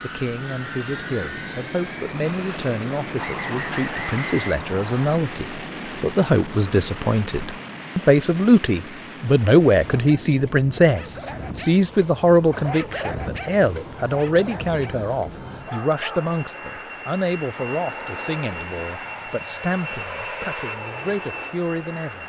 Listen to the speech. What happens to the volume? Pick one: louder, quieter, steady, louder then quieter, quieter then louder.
louder then quieter.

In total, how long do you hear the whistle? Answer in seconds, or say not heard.
2 s.